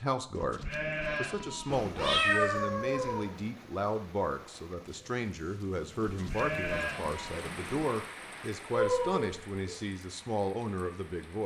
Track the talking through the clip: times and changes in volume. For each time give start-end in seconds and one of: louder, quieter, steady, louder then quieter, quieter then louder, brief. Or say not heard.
0.0-11.4 steady.